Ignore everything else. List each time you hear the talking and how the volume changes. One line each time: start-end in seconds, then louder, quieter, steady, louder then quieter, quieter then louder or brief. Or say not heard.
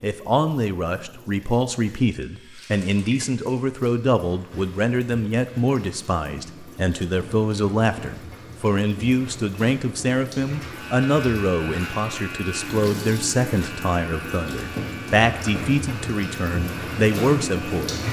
0.0-18.0 steady.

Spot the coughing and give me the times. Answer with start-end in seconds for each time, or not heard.
not heard.